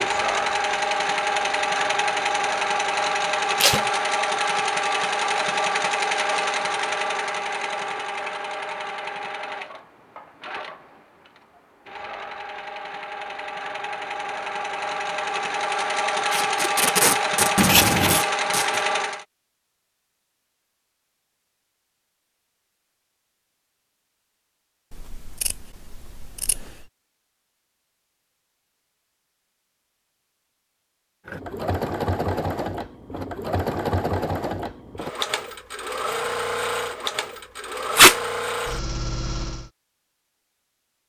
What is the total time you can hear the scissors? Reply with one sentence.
You can hear the scissors for 3 seconds altogether.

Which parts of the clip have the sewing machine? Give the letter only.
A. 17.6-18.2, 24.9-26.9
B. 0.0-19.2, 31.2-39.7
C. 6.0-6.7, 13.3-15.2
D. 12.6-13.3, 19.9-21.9
B.